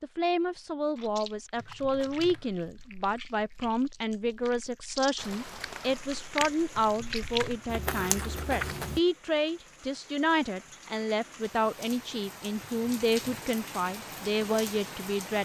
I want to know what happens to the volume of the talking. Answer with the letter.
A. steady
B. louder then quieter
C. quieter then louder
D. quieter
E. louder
A.